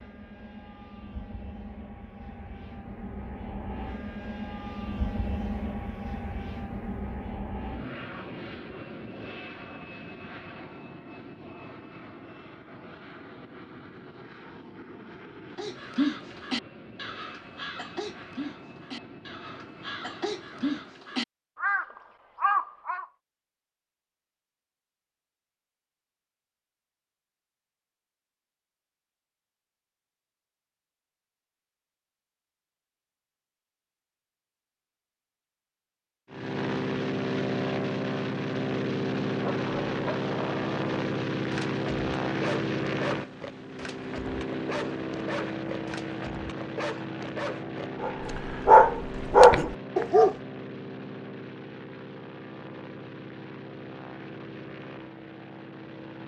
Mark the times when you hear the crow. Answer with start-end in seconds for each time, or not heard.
15.6-23.1.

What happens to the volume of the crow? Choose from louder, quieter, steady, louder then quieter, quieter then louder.
quieter then louder.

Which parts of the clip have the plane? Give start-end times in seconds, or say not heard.
0.0-21.1, 36.3-56.2.